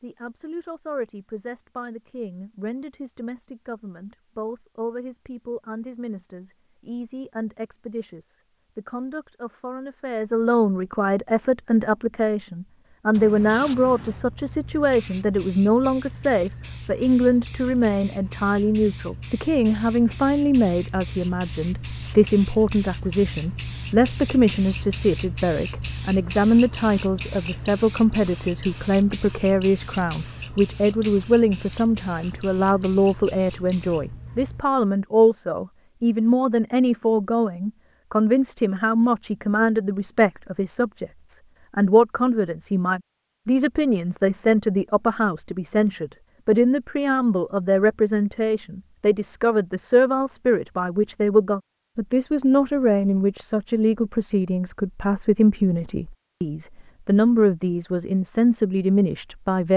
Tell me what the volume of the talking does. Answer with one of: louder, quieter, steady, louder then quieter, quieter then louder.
louder.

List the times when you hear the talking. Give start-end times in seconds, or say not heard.
0.0-59.7.